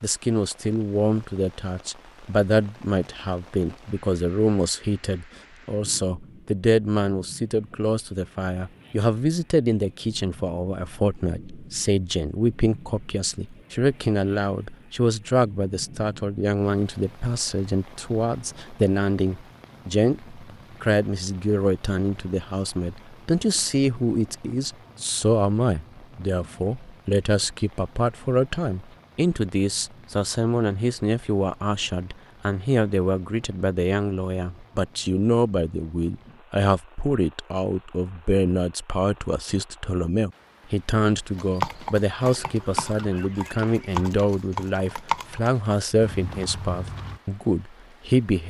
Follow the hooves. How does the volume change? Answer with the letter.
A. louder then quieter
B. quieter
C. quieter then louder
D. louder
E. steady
A.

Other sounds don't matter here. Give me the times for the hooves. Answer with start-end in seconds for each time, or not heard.
41.4-47.2.